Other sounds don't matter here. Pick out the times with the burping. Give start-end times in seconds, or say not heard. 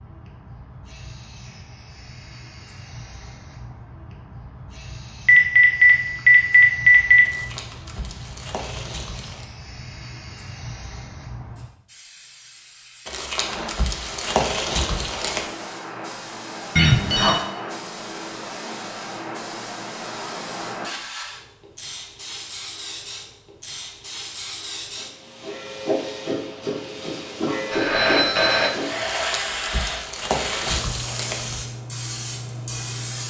not heard.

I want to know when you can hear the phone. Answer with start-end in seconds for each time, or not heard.
5.2-7.2, 16.8-17.4, 27.7-28.7.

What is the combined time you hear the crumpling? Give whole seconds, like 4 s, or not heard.
7 s.